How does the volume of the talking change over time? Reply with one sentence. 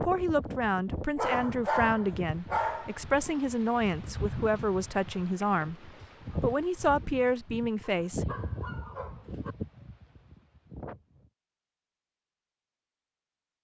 The loudness of the talking stays about the same.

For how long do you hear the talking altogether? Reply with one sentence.
The talking can be heard for 8 seconds in total.